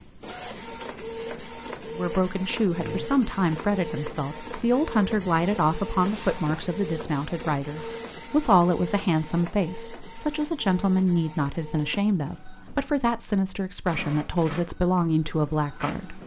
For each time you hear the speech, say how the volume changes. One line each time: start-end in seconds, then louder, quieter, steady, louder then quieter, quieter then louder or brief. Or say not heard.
1.9-16.2 steady.